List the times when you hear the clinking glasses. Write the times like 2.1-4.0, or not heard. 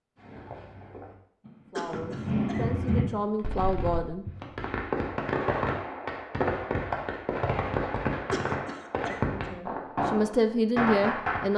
not heard.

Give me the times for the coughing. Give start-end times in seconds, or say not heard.
1.8-2.9, 8.3-9.5.